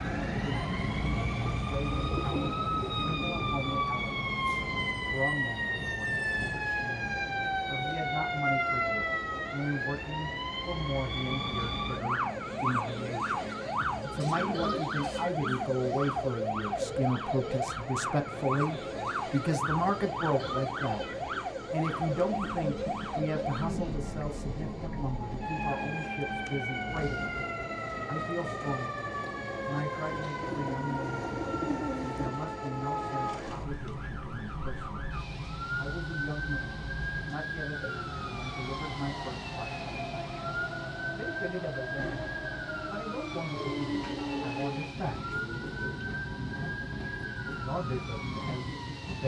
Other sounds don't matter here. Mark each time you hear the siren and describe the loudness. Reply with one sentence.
You can hear the siren from 0.0 to 49.2 s, getting quieter.